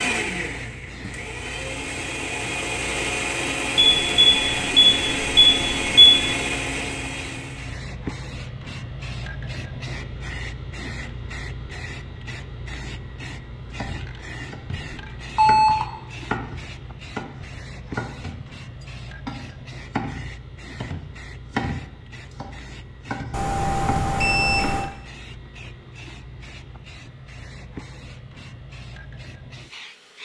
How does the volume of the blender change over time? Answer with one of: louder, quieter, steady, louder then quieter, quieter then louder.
louder.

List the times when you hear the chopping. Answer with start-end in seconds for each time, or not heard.
13.7-24.8.